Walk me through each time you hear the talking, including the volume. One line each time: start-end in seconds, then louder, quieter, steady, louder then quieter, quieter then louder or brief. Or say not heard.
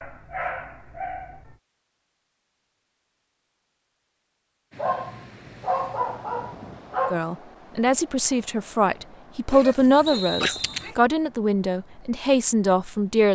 7.1-13.2 steady.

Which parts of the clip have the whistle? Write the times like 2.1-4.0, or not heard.
10.1-10.9.